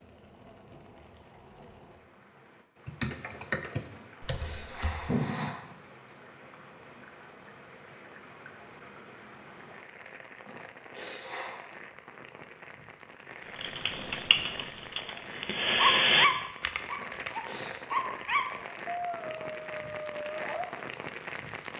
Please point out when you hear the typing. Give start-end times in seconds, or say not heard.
2.9-5.2, 13.6-17.3.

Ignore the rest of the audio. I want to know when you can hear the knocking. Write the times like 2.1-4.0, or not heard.
not heard.